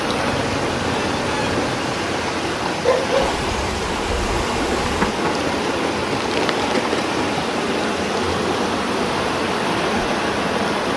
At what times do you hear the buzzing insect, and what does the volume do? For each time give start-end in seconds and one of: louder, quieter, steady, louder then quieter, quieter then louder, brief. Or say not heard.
0.0-10.9 steady.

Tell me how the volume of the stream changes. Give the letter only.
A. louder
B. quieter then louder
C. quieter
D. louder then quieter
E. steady
E.